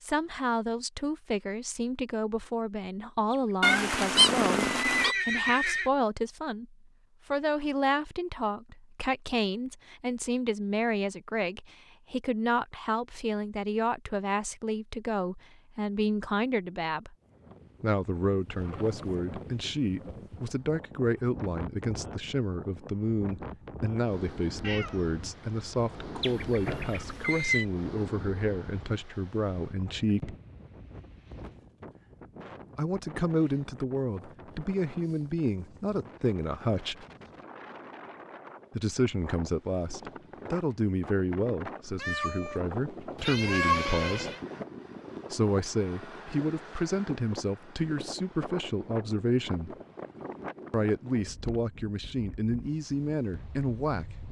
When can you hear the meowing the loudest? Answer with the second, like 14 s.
4 s.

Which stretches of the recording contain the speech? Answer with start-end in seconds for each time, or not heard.
0.0-17.1, 17.8-30.4, 32.8-37.0, 38.8-44.3, 45.3-49.8, 50.7-54.0.